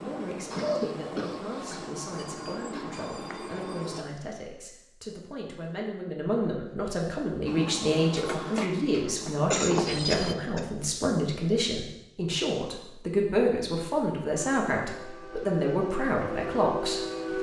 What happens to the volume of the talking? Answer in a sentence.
The volume of the talking goes up.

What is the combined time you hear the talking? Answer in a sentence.
You can hear the talking for 17 seconds altogether.